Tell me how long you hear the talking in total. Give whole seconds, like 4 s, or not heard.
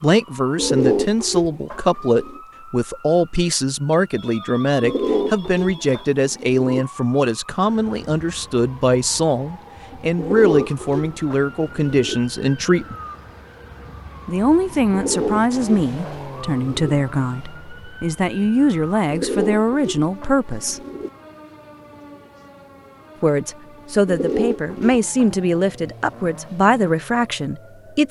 24 s.